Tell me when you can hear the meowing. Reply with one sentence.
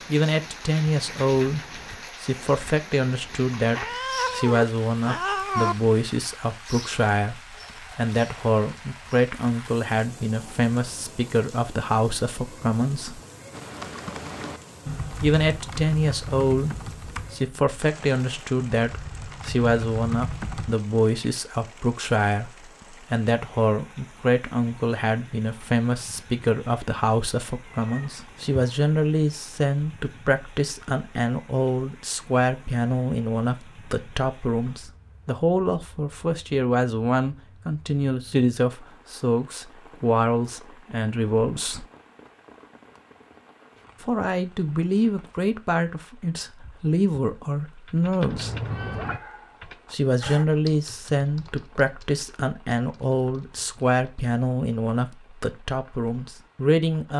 You can hear the meowing from 3.7 to 5.8 s, from 27.6 to 28.6 s and from 48.2 to 49.2 s.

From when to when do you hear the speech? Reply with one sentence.
The speech can be heard from 0.1 to 13.2 s, from 15.2 to 41.9 s, from 44.0 to 48.5 s and from 49.9 to 57.1 s.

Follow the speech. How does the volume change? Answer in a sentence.
The volume of the speech stays about the same.